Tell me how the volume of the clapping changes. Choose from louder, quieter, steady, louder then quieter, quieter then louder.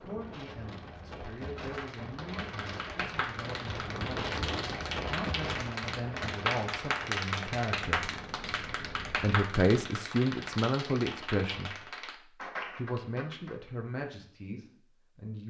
louder then quieter.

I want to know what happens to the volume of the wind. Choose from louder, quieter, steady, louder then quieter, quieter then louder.
louder then quieter.